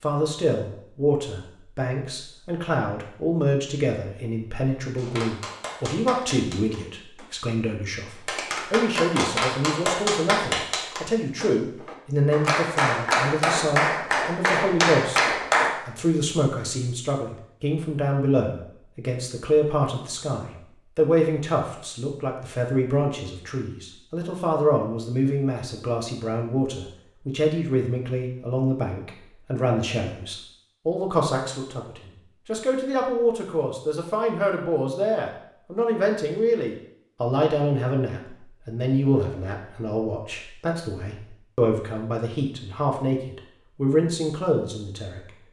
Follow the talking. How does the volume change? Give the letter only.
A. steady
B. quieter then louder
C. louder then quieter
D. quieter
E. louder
A.